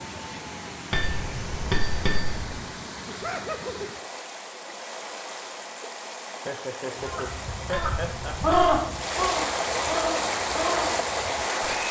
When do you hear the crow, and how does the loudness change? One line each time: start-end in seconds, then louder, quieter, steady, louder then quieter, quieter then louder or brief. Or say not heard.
7.0-11.8 louder then quieter.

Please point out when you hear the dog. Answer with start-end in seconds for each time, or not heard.
not heard.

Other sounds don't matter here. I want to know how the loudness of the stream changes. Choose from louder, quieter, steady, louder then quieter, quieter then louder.
louder.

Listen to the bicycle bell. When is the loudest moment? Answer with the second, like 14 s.
2 s.